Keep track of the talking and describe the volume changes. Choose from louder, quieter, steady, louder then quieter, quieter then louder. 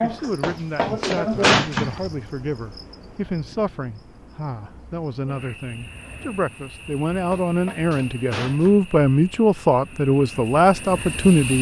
louder.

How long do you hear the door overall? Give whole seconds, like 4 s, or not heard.
3 s.